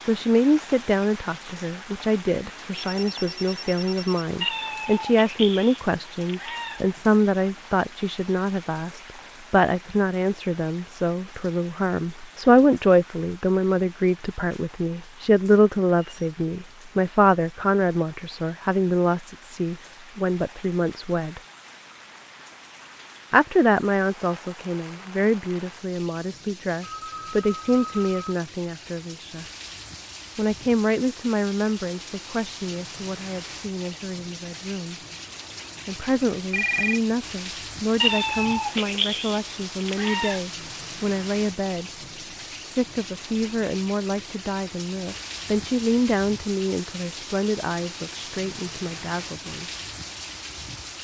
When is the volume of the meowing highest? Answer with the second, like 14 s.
38 s.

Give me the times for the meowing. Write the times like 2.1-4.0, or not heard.
4.4-7.0, 38.0-40.4.